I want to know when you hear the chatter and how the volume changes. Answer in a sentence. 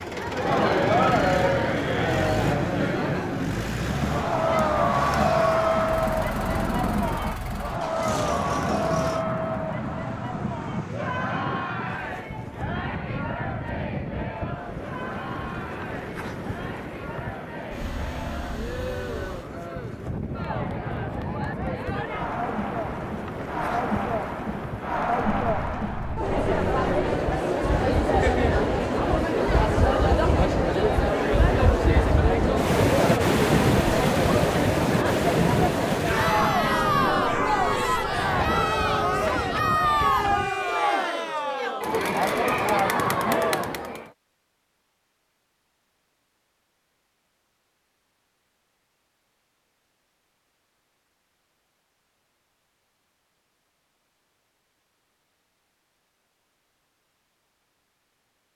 You can hear the chatter from 0.0 to 44.1 s, getting quieter then louder.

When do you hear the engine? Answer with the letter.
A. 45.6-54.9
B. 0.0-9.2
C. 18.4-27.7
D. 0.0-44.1
B.